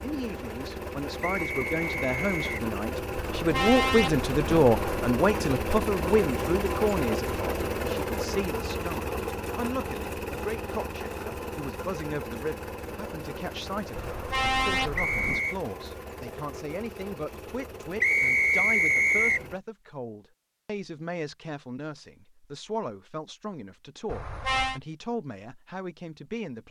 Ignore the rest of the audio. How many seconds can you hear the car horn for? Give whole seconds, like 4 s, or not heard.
4 s.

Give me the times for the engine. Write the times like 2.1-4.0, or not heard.
0.0-19.6.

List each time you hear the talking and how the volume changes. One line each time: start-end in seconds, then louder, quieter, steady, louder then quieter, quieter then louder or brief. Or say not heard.
0.0-26.6 quieter.